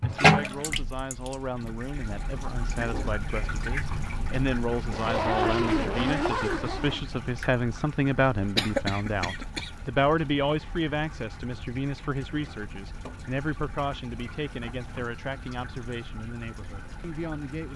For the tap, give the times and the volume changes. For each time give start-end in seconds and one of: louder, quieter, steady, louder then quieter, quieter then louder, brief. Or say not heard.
0.0-17.7 quieter.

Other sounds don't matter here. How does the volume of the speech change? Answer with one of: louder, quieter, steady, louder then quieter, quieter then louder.
louder then quieter.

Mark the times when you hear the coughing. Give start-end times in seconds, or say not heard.
8.6-9.7.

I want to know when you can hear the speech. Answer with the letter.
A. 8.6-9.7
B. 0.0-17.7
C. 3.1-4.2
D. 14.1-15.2
B.